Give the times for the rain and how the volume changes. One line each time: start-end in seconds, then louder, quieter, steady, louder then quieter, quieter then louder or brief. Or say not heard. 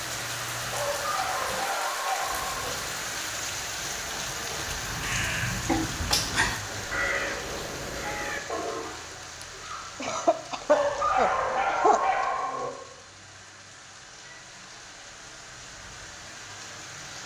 0.0-17.2 quieter.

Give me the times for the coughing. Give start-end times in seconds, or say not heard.
5.7-6.6, 10.0-12.2.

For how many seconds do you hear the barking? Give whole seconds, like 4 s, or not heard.
4 s.